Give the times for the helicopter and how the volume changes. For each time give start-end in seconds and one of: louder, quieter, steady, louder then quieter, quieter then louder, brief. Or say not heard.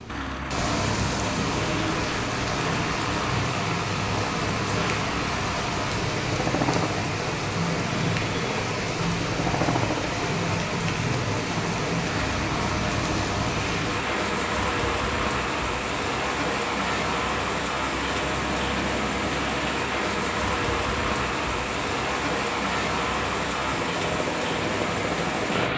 0.0-25.7 steady.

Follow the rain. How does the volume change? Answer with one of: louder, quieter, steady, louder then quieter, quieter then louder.
steady.